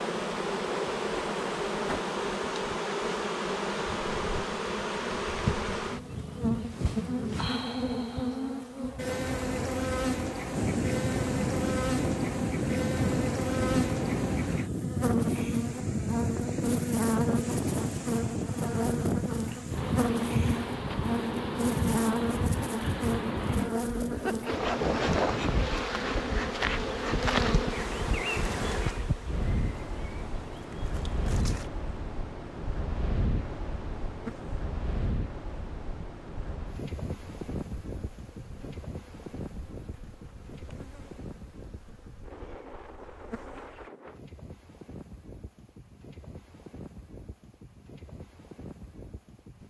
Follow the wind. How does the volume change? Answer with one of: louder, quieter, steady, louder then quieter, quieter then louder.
quieter.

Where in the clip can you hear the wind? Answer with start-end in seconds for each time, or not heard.
10.5-49.6.